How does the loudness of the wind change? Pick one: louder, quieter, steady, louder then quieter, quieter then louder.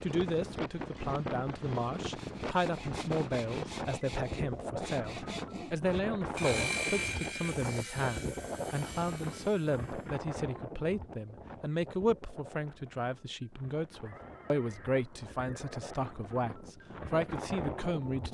quieter then louder.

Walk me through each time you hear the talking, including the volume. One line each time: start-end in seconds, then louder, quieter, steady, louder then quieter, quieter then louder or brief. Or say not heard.
0.0-18.2 steady.